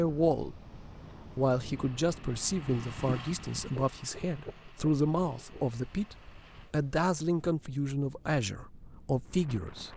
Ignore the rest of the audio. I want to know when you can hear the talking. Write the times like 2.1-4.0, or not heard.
0.0-0.6, 1.4-9.9.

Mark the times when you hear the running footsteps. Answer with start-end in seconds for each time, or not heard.
not heard.